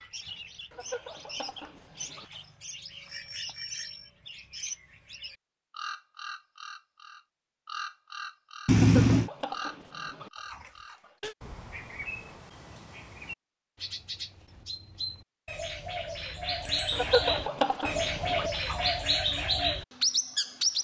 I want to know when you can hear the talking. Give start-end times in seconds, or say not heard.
not heard.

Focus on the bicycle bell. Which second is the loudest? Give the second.
9 s.